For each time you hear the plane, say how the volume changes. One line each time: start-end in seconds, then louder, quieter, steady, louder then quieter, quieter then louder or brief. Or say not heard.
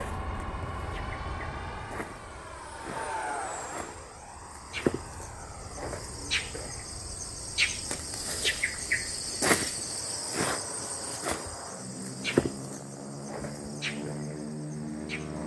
0.0-15.4 quieter then louder.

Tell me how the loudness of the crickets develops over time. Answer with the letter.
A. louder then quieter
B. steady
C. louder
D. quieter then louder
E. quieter
C.